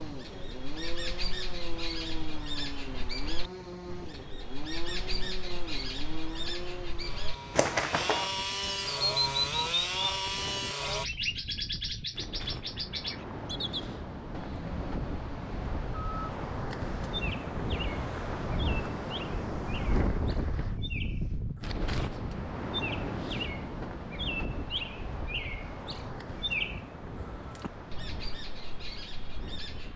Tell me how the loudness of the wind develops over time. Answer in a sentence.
The loudness of the wind goes up, then down.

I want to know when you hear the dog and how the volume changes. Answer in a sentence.
You can't hear the dog here.